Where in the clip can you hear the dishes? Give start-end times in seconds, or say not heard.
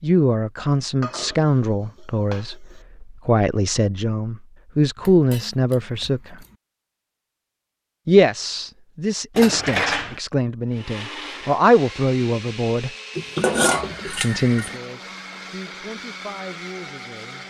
1.0-2.9, 5.0-6.5, 9.3-10.2, 13.2-14.8.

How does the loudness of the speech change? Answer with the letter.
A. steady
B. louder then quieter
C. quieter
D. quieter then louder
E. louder
C.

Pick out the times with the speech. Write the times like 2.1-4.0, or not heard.
0.0-6.3, 8.1-12.9, 14.2-17.4.